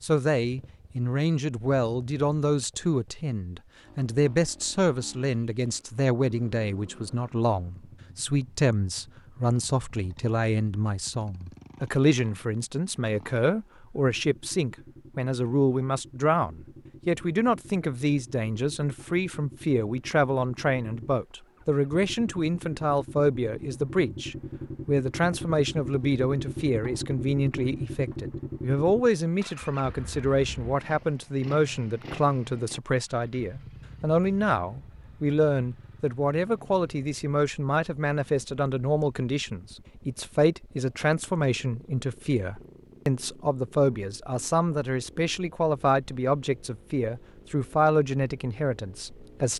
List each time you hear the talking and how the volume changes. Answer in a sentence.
You can hear the talking from 0.0 to 49.5 s, at a steady volume.